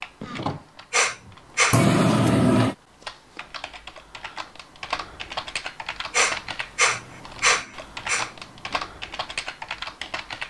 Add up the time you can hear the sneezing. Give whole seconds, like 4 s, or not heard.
3 s.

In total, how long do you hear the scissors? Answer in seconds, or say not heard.
3 s.